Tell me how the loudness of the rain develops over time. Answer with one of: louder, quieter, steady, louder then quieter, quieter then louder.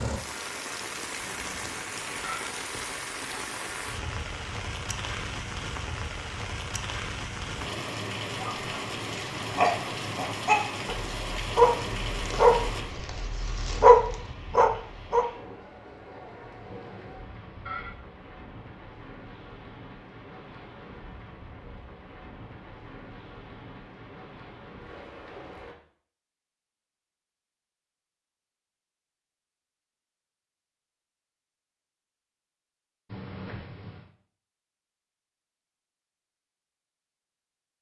quieter.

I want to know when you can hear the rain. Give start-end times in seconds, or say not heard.
0.0-25.8.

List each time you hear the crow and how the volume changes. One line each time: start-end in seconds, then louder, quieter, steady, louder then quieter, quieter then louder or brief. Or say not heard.
not heard.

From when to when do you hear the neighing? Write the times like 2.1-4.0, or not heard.
1.2-2.5, 16.6-17.9, 33.0-34.0.